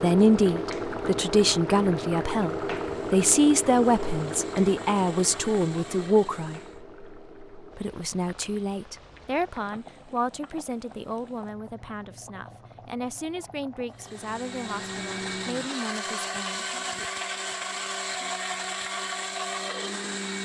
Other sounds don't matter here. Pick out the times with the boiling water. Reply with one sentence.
You can hear the boiling water from 0.0 to 15.7 s.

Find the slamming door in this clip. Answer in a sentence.
The slamming door can't be heard in this clip.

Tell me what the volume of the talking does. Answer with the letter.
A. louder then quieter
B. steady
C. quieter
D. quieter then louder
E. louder
C.